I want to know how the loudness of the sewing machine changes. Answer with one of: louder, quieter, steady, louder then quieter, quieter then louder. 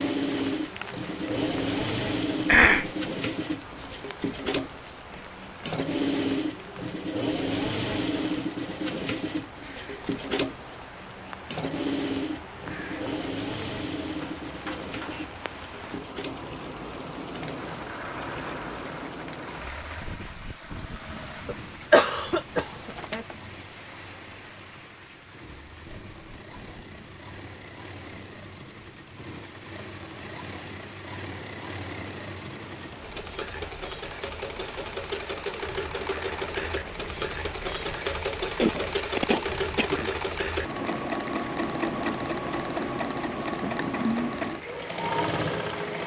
quieter then louder.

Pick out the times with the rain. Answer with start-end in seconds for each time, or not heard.
0.0-46.0.